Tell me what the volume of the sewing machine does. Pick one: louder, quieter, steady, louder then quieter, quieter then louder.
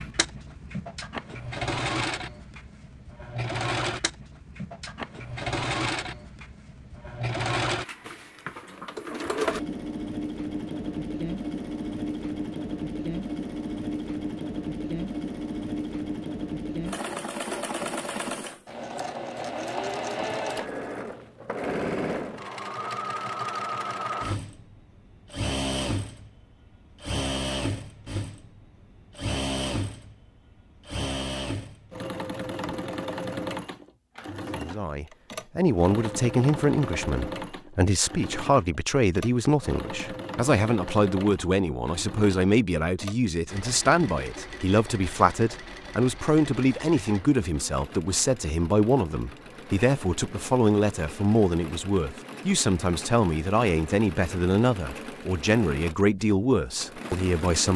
quieter.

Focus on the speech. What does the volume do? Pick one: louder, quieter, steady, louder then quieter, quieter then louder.
steady.